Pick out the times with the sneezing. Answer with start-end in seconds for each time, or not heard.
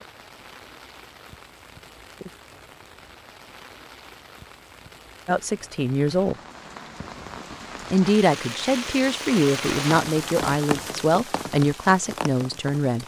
not heard.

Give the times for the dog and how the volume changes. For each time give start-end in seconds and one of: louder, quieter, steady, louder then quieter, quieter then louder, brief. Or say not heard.
not heard.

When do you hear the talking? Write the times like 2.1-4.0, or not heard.
5.2-6.3, 7.9-13.0.